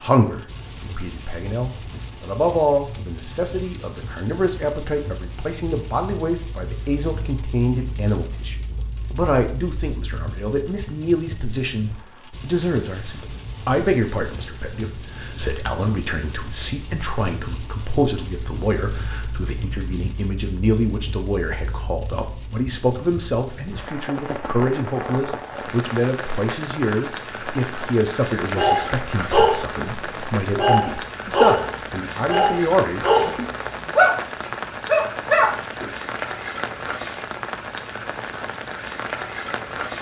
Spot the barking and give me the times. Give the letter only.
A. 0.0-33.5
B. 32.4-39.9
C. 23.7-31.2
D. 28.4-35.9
D.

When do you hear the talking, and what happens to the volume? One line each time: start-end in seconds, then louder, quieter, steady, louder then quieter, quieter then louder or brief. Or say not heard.
0.0-33.5 steady.